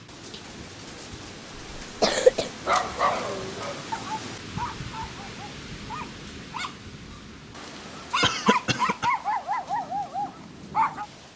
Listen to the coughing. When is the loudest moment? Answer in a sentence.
The volume of the coughing peaks at 2 seconds.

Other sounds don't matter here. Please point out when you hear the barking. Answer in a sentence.
You can hear the barking from 2.6 to 11.1 s.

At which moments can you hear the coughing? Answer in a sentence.
You can hear the coughing from 1.8 to 2.5 s and from 8.2 to 9.1 s.